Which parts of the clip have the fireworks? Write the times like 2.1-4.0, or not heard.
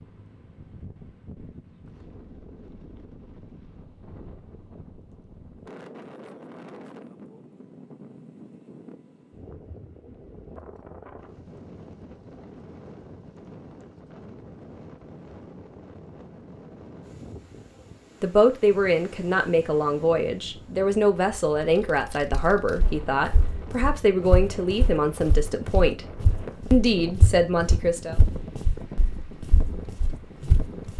not heard.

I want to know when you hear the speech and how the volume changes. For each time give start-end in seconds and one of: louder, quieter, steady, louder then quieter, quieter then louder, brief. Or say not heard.
18.2-26.1 steady
26.7-28.1 brief.